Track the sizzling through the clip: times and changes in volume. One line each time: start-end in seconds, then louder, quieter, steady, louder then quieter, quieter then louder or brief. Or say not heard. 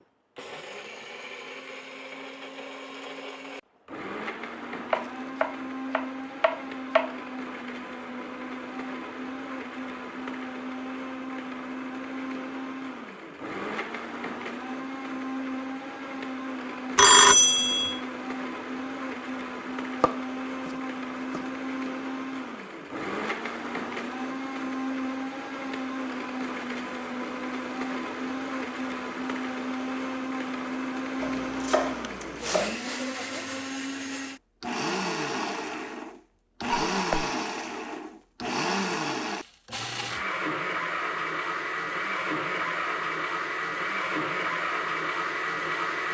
not heard.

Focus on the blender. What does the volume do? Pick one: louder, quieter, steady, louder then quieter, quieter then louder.
louder.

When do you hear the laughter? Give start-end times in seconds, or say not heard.
not heard.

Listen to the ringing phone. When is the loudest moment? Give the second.
17 s.